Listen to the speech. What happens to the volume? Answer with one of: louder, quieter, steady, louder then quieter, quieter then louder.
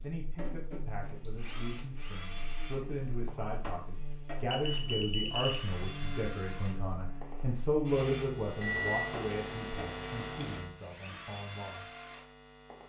louder then quieter.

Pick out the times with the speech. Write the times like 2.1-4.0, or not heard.
0.0-11.8.